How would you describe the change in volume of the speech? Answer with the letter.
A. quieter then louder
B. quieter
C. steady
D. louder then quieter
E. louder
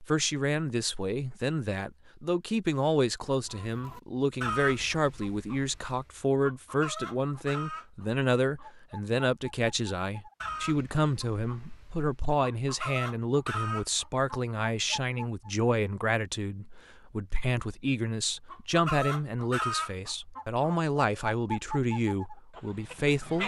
C.